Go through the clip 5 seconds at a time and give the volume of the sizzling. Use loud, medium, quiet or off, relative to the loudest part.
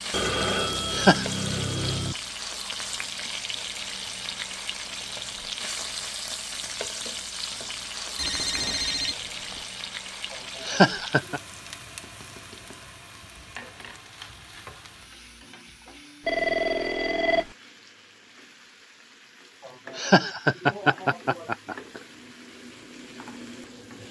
loud, loud, medium, quiet, medium.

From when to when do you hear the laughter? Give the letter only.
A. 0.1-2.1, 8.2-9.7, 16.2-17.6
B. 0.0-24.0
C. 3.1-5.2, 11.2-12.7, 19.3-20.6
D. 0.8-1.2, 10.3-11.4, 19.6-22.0
D.